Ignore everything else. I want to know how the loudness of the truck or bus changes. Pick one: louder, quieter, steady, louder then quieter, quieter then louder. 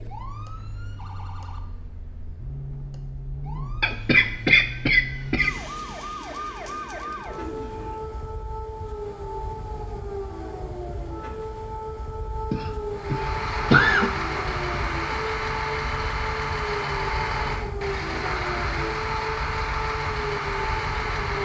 steady.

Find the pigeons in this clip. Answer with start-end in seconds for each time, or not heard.
6.2-8.1.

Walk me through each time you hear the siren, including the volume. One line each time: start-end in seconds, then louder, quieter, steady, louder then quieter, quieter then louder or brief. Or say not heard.
0.0-21.4 louder.